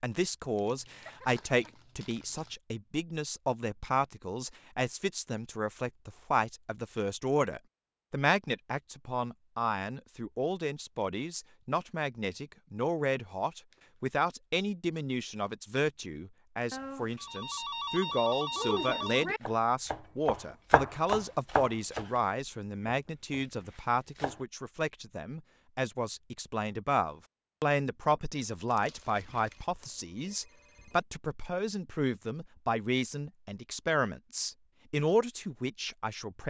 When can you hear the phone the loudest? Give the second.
19 s.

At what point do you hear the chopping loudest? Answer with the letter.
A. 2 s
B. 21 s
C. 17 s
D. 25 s
B.